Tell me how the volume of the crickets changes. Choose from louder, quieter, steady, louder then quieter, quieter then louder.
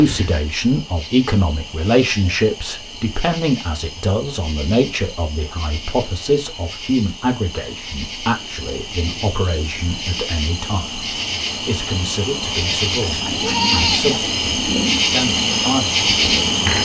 louder.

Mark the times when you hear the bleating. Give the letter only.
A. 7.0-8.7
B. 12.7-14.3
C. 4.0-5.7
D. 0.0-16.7
B.